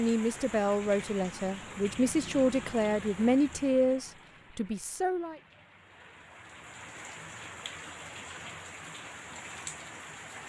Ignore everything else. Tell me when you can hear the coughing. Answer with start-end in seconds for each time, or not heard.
not heard.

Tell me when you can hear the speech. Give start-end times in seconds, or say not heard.
0.0-5.4.